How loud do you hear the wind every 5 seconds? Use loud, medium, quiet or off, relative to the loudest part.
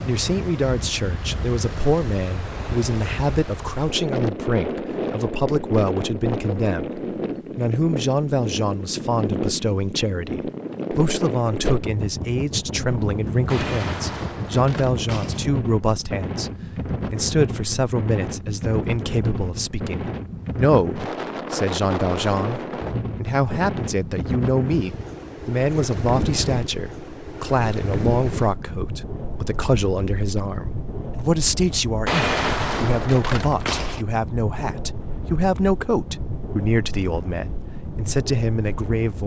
loud, loud, loud, loud, loud, loud, medium, medium.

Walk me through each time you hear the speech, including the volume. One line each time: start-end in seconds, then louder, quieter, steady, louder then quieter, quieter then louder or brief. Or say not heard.
0.1-39.2 steady.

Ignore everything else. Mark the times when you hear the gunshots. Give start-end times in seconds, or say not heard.
13.4-15.4, 32.0-34.0.